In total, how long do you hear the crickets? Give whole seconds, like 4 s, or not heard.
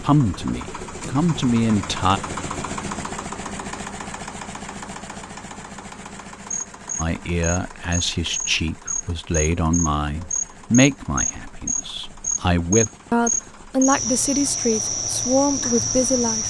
10 s.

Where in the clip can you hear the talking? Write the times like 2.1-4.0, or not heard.
0.0-2.2, 7.0-16.4.